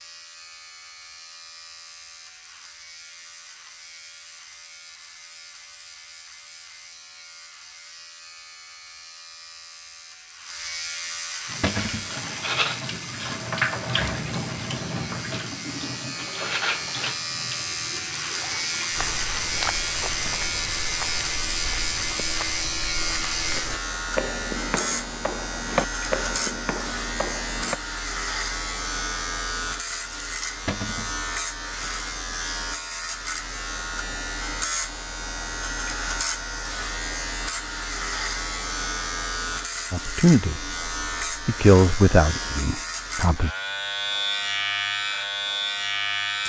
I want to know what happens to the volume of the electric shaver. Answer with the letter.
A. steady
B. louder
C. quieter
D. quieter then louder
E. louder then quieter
B.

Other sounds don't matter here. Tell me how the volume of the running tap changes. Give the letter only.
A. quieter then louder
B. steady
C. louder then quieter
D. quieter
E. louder
D.